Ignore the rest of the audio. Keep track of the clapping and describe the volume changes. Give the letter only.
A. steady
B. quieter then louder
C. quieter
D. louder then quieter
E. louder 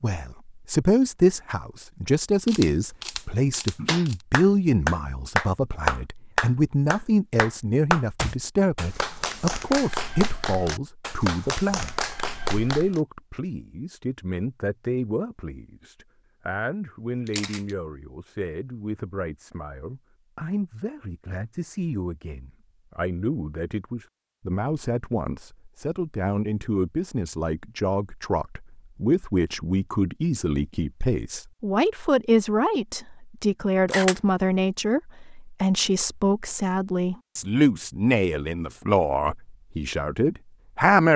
C.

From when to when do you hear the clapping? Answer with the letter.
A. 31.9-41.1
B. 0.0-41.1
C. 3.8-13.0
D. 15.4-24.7
C.